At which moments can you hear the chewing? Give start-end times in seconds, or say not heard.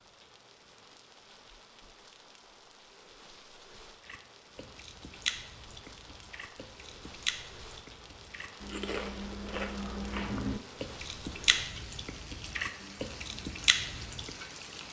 4.0-14.3.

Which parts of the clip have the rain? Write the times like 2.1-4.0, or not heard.
0.0-14.8.